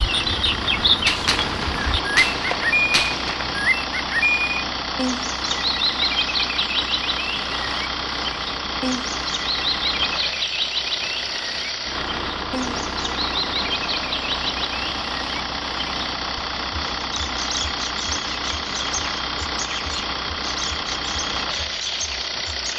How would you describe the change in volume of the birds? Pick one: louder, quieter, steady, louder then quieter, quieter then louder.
quieter.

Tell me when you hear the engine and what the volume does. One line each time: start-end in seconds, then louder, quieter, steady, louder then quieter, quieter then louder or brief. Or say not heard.
0.0-22.7 steady.